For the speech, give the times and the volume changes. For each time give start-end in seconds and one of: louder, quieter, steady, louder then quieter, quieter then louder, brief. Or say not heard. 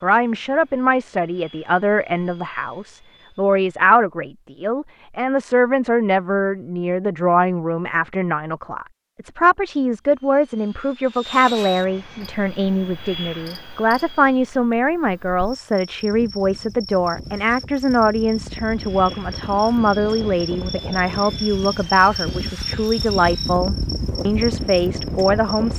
0.0-25.7 steady.